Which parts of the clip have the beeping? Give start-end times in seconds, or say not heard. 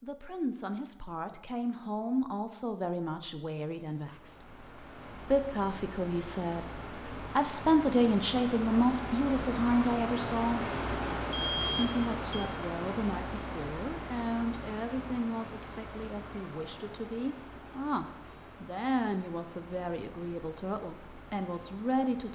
11.3-12.4.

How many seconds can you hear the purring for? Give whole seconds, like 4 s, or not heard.
not heard.